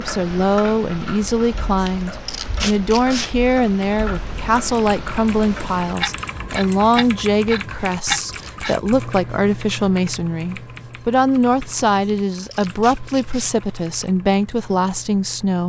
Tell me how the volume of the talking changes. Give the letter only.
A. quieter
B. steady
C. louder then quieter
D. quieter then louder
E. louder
B.